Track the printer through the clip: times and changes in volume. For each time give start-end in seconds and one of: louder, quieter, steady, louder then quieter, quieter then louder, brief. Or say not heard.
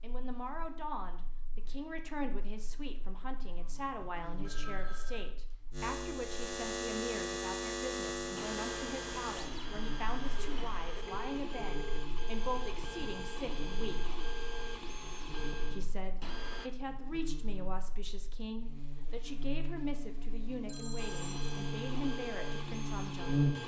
8.3-16.7 steady
20.9-23.6 brief.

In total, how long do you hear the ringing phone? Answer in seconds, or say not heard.
4 s.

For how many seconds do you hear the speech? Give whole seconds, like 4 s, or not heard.
22 s.